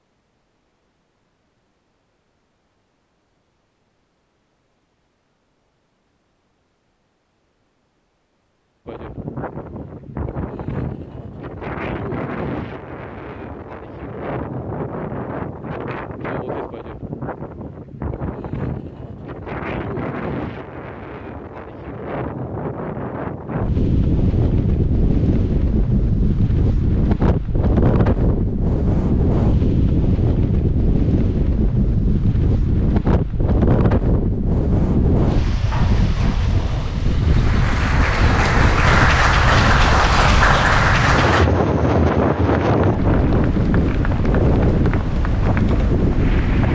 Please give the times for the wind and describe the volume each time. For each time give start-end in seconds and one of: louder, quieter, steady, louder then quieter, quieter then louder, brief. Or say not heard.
8.8-46.6 louder.